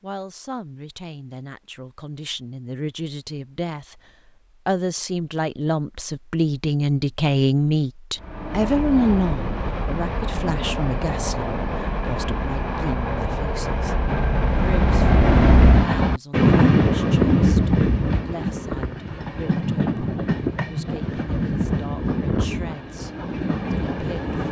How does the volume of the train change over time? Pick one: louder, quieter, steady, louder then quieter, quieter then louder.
louder then quieter.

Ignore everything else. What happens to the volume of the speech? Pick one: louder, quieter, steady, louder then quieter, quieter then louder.
louder then quieter.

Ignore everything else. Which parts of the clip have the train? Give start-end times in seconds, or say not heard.
8.2-24.4.